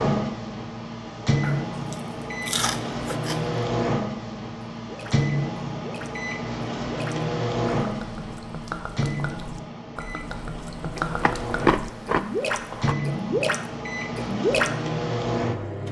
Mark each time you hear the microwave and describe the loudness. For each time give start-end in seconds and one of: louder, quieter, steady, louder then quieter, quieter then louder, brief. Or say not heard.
0.0-15.8 quieter then louder.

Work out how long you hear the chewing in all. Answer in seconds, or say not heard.
4 s.